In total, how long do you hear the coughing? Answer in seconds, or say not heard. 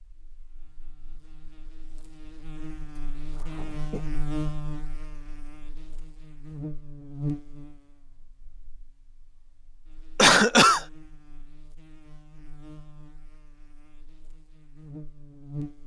2 s.